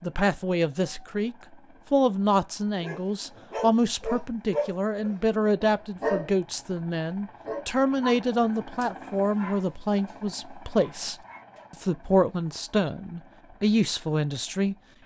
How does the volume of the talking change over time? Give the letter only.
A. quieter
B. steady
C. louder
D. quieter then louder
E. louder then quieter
B.